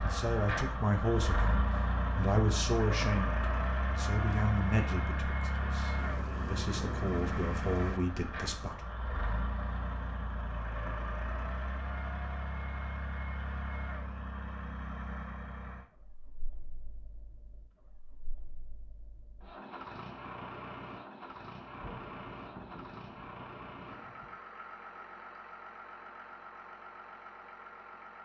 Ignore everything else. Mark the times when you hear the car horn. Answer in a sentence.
You can't hear the car horn here.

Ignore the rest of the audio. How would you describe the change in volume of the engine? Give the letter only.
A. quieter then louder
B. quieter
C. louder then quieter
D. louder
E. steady
B.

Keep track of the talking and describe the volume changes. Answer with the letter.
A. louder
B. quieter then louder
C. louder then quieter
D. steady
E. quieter
B.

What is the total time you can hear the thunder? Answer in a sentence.
You can hear the thunder for 5 seconds altogether.